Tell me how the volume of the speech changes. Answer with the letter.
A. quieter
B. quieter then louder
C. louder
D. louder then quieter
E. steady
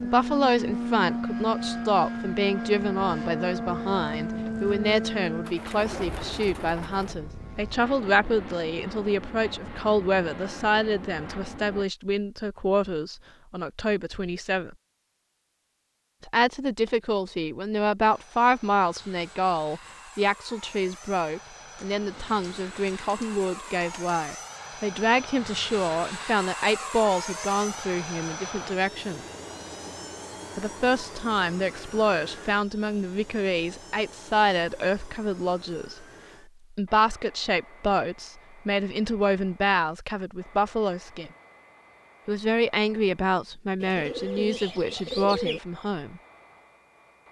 E.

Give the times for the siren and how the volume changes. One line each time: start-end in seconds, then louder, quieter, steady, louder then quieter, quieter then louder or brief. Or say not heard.
not heard.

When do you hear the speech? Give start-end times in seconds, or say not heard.
0.0-14.8, 16.2-29.2, 30.6-36.0, 36.7-41.3, 42.2-46.2.